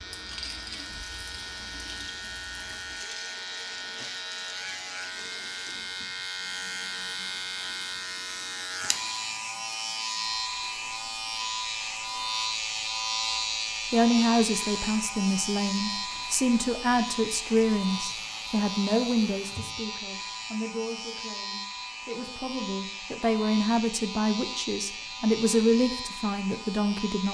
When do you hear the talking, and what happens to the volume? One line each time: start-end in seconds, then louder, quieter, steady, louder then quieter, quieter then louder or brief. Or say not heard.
13.9-27.2 quieter then louder.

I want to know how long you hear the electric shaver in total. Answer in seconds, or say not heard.
27 s.